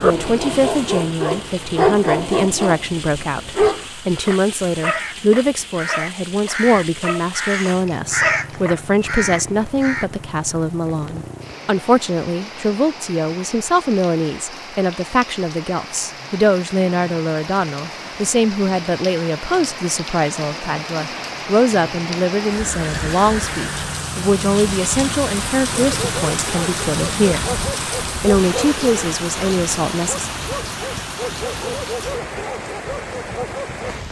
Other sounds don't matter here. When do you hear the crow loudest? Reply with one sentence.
The loudest moment of the crow is at 8 seconds.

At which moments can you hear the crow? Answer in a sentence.
You can hear the crow from 3.7 to 10.1 s.